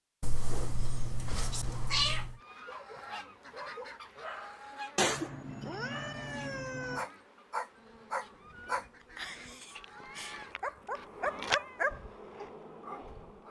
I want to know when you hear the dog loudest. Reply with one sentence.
The volume of the dog peaks at 12 seconds.